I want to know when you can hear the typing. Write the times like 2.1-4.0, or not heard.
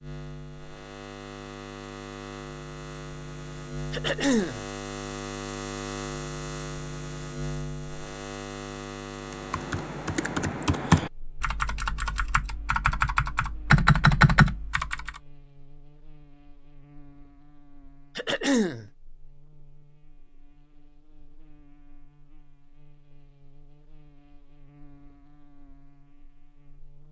9.3-15.1.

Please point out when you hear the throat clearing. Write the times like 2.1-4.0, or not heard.
3.9-4.7, 18.1-18.9.